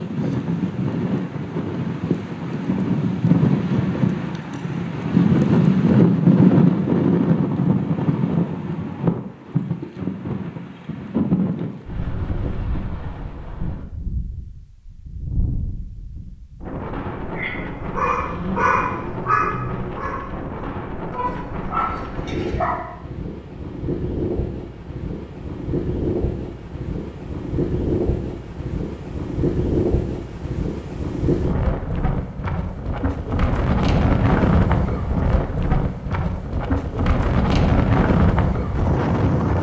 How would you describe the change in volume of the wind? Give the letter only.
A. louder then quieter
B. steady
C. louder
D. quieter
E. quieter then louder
E.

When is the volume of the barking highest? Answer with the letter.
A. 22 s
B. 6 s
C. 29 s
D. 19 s
D.